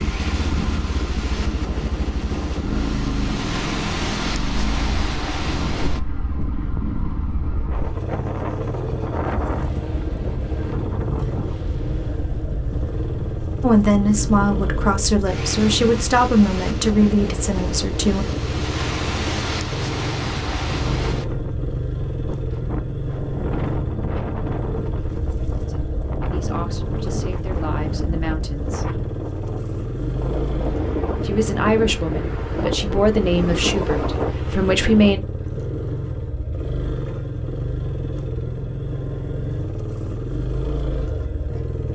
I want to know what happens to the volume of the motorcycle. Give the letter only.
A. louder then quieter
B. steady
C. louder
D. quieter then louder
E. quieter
B.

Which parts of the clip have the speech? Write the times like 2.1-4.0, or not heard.
13.6-18.2, 25.6-28.9, 31.2-35.2.